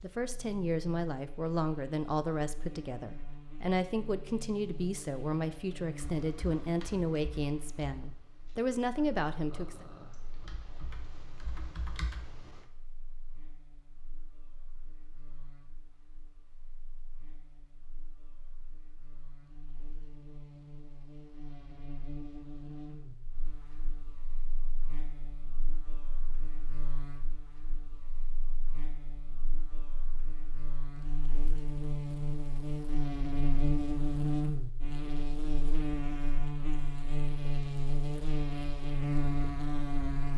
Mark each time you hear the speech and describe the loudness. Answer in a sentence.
The speech can be heard from 0.0 to 9.8 s, at a steady volume.